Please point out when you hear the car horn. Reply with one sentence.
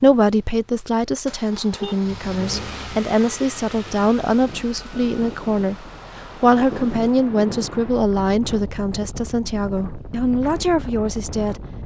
The car horn can be heard from 1.3 to 2.0 s.